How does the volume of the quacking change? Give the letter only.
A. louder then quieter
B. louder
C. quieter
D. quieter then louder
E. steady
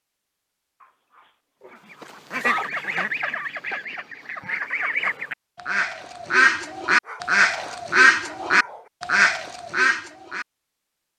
B.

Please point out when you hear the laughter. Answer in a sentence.
You can't hear the laughter here.